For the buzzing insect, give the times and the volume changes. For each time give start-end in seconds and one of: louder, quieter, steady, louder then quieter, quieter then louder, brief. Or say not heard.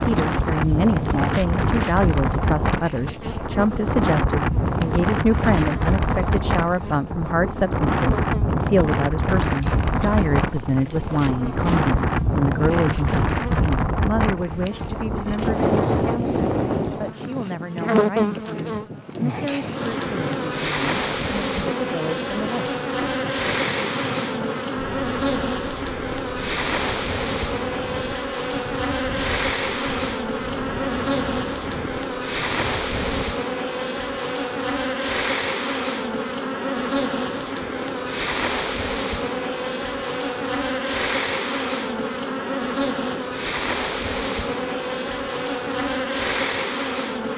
0.0-47.3 louder.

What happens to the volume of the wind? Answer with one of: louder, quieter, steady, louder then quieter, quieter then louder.
quieter.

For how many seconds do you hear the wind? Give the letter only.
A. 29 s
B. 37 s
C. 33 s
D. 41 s
C.